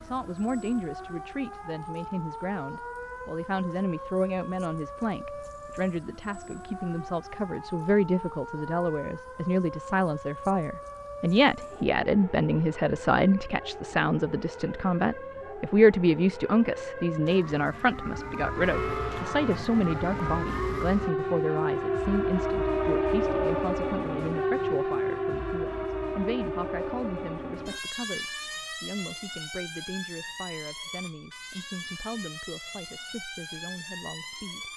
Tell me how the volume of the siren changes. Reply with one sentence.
The loudness of the siren goes up, then down.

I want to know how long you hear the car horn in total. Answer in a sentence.
The car horn can be heard for 2 seconds in total.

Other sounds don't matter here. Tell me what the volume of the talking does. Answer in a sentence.
The volume of the talking goes up, then down.